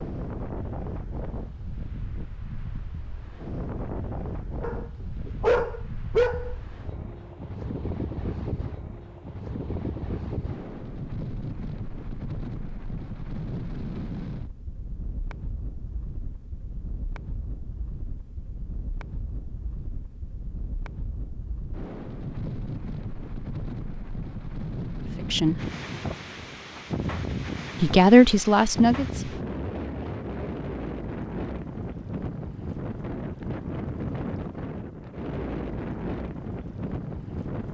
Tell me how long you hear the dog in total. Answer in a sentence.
You can hear the dog for 2 seconds altogether.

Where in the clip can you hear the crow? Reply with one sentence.
You can't hear the crow here.